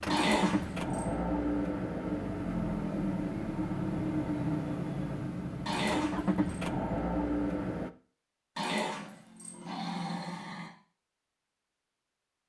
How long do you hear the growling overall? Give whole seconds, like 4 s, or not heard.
4 s.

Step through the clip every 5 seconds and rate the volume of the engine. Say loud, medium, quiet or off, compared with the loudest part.
loud, loud, off.